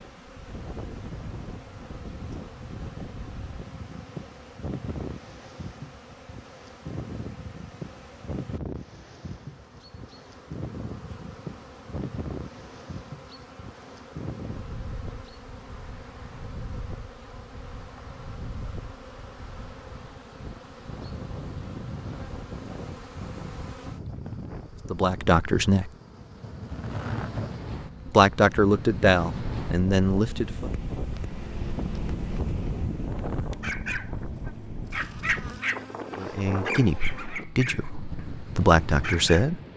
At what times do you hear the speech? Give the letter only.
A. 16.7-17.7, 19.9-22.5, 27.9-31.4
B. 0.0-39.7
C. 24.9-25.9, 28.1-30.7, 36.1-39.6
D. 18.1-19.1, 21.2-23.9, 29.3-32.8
C.